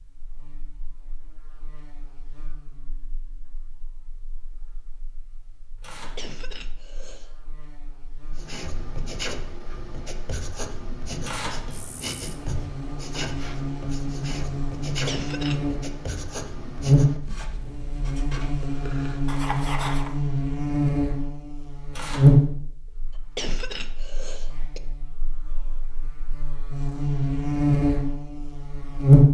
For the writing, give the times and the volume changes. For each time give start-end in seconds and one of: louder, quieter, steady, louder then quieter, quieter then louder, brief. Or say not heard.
8.3-20.1 steady.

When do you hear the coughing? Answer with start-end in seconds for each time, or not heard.
6.2-7.3, 15.1-15.8, 23.4-24.8.